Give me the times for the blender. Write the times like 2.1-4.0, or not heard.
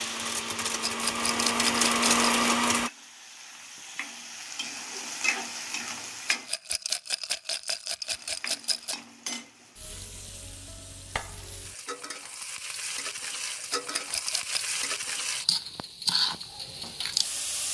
0.0-2.9.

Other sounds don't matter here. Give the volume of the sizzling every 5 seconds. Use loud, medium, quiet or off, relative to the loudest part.
medium, medium, medium, loud.